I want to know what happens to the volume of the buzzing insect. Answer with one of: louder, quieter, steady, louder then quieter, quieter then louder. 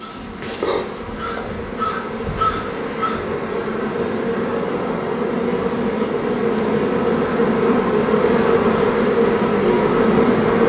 louder.